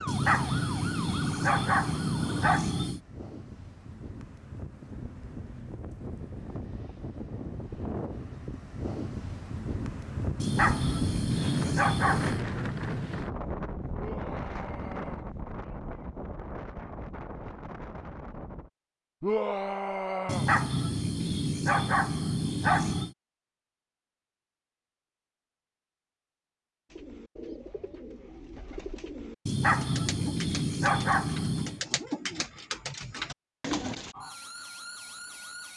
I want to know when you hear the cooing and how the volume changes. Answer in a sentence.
You can hear the cooing from 26.9 to 34.1 s, getting louder.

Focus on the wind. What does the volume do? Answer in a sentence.
The loudness of the wind goes up, then down.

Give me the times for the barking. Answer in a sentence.
You can hear the barking from 0.1 to 3.0 s, from 10.4 to 12.4 s, from 20.2 to 23.1 s and from 29.4 to 31.8 s.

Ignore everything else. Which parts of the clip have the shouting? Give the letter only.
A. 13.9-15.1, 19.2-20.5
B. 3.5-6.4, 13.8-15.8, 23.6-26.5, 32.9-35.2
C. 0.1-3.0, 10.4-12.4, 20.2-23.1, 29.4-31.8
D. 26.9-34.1
A.